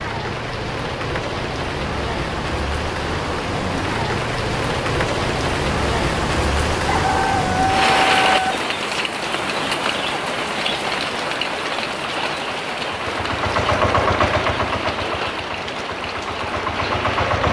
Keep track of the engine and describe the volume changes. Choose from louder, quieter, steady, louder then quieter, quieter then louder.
quieter then louder.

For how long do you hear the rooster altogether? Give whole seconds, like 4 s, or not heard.
2 s.